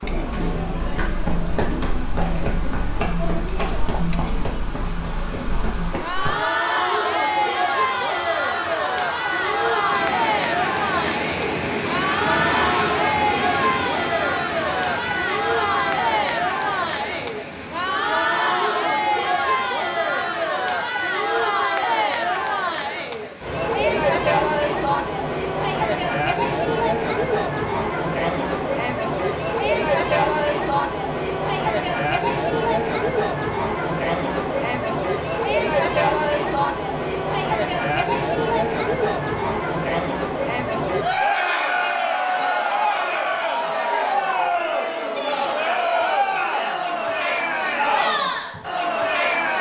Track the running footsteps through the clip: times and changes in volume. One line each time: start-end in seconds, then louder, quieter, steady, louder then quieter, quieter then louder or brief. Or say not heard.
0.8-6.3 quieter.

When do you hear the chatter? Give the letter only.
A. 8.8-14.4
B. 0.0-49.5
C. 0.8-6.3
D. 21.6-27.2
B.